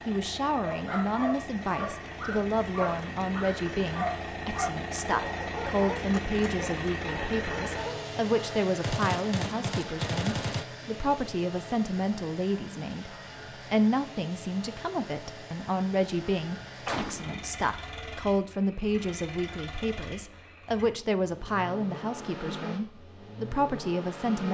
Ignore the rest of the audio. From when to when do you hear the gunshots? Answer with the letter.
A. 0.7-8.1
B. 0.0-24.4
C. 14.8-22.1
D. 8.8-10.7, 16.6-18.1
D.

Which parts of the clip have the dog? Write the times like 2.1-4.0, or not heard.
0.7-8.1.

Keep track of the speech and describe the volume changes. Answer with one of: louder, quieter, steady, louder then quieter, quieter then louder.
steady.